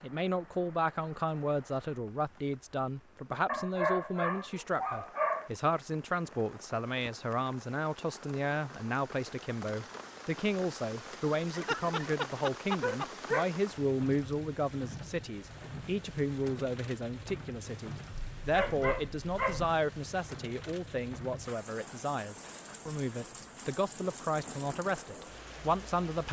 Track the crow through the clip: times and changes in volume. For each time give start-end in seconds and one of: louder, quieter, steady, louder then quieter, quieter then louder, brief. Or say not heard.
not heard.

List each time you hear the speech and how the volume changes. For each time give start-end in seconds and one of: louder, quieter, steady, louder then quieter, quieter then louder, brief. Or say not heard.
0.0-26.2 steady.